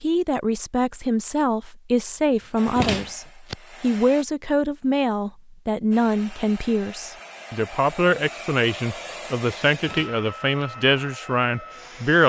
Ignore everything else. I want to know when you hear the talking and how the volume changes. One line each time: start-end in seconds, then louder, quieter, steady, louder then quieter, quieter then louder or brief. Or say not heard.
0.0-12.2 steady.